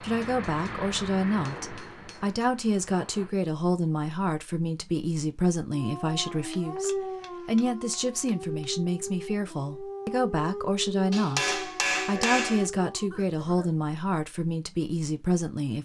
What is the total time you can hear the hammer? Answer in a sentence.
You can hear the hammer for 6 seconds altogether.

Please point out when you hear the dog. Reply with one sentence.
You can hear the dog from 5.7 to 13.1 s.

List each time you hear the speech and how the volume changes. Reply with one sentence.
The speech can be heard from 0.0 to 15.8 s, at a steady volume.